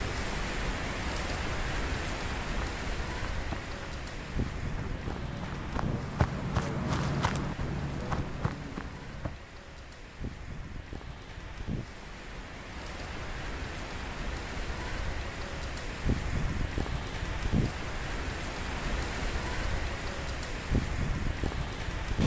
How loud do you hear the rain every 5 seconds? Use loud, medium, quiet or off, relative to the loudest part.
loud, medium, medium, loud, loud.